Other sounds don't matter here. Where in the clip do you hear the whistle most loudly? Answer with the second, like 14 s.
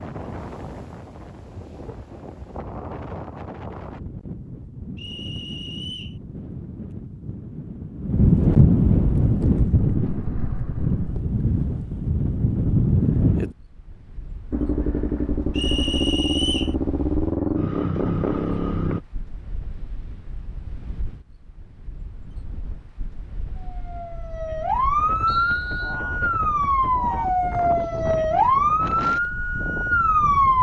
16 s.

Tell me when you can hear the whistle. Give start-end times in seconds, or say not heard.
5.0-6.2, 15.6-16.8, 25.2-25.9.